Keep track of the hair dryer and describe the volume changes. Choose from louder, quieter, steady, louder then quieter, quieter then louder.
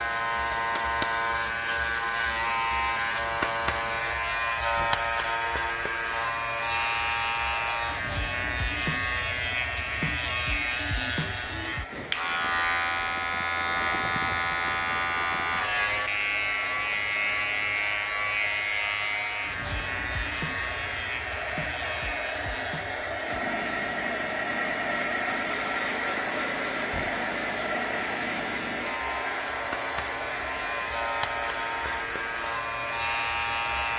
louder.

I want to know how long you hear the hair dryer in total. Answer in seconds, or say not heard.
34 s.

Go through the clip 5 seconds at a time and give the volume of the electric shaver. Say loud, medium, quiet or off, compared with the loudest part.
loud, loud, loud, loud, medium, medium, loud.